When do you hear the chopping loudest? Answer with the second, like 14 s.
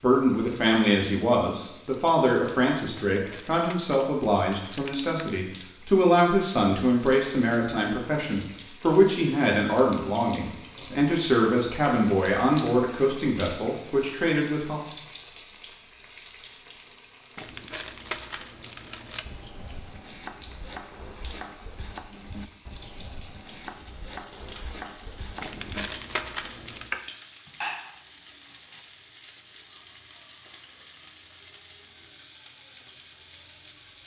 27 s.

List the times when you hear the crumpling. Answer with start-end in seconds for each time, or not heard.
3.1-5.3, 17.4-19.2, 25.4-26.9.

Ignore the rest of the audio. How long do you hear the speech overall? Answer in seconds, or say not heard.
15 s.